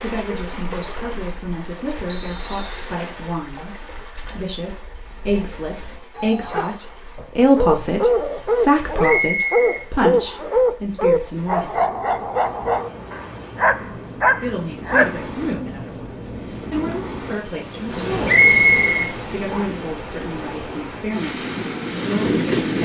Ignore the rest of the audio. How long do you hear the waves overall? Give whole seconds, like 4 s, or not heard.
23 s.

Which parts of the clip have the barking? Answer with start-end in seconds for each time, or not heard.
6.2-15.2.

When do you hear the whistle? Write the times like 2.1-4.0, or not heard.
2.0-3.0, 9.0-10.6, 18.2-19.6.